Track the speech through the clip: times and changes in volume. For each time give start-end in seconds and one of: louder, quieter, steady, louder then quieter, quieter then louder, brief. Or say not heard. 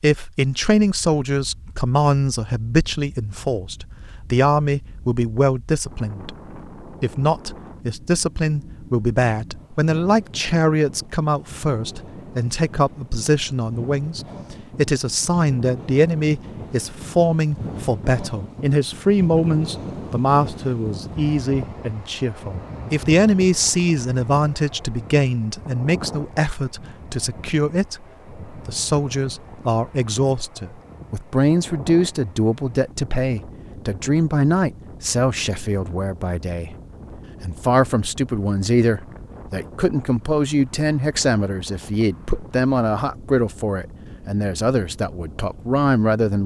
0.0-36.7 steady
37.4-46.4 steady.